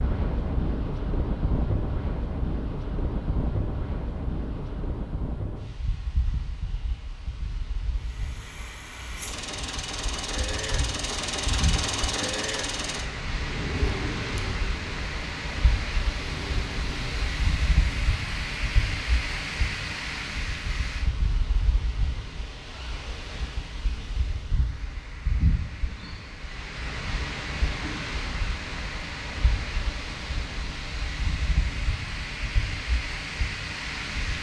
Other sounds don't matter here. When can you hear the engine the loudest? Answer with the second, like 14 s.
12 s.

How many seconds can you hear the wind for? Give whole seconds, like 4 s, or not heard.
34 s.